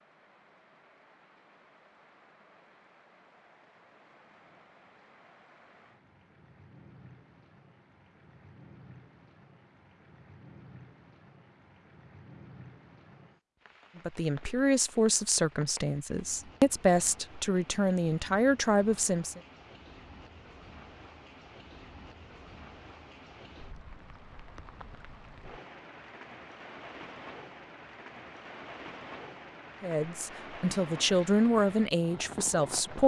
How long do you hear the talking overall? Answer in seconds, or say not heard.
9 s.